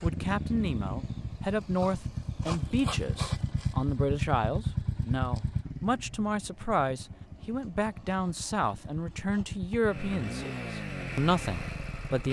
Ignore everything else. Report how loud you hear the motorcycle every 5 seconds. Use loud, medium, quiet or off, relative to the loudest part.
loud, medium, loud.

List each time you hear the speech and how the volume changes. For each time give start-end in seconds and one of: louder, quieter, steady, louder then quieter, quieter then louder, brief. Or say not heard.
0.0-12.2 steady.